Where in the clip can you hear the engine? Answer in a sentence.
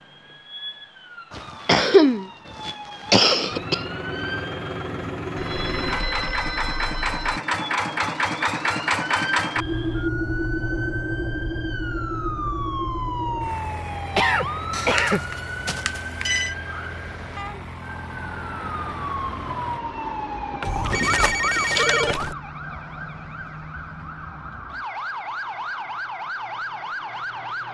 The engine can be heard from 3.5 to 19.8 s.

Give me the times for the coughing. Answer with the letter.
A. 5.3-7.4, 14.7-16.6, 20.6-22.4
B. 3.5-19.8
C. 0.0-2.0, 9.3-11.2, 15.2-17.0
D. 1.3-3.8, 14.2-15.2
D.